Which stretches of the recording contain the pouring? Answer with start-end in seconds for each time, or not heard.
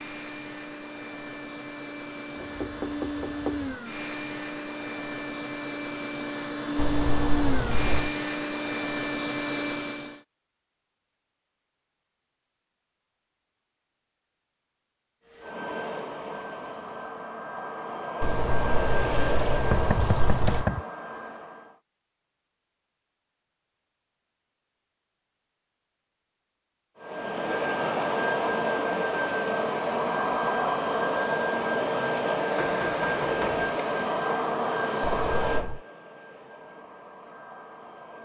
6.8-8.1, 18.2-20.6, 35.0-35.8.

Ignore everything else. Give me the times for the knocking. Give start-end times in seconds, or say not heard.
2.4-3.8, 19.6-20.9, 32.5-33.7.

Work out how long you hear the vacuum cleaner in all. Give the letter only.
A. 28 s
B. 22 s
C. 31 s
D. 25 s
A.